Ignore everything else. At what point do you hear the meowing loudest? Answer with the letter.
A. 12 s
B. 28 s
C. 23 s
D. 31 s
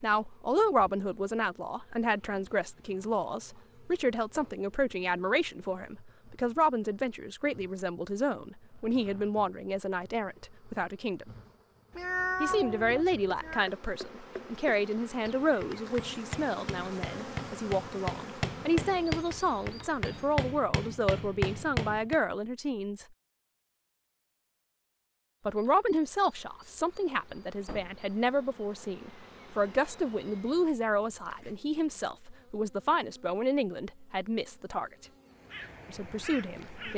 A.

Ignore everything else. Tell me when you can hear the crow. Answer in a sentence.
You can hear the crow from 35.3 to 36.9 s.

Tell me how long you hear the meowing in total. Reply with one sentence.
The meowing can be heard for 2 seconds in total.